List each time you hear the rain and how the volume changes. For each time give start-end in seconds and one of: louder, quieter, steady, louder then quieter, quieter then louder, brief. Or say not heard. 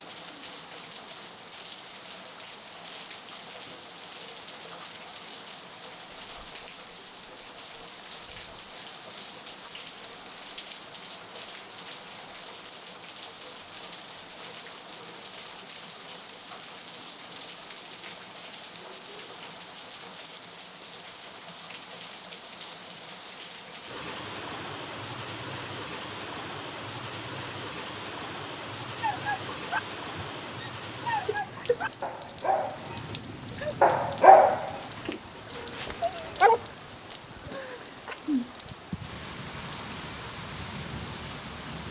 0.0-41.8 steady.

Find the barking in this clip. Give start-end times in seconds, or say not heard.
29.0-32.9, 33.8-36.6.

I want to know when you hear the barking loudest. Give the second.
34 s.